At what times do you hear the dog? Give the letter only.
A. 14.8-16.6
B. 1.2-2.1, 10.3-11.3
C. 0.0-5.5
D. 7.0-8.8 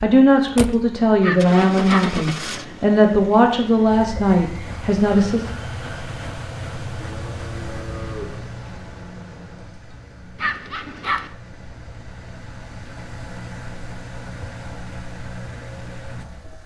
B.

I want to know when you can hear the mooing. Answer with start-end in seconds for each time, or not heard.
7.0-8.8.